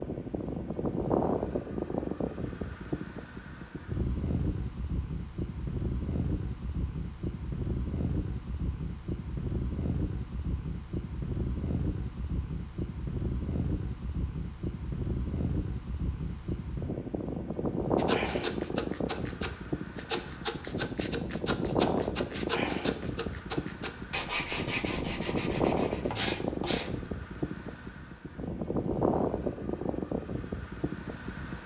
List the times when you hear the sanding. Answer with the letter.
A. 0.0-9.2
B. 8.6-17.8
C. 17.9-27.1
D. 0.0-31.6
C.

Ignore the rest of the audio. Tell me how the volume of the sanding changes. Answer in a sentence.
The volume of the sanding stays about the same.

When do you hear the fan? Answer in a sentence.
The fan can be heard from 0.0 to 31.6 s.